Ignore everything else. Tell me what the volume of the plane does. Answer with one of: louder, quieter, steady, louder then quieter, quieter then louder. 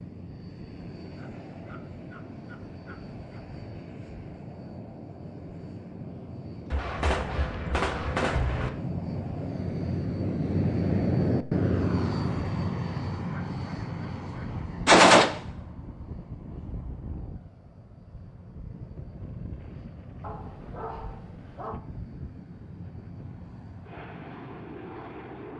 louder then quieter.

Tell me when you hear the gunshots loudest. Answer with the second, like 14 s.
15 s.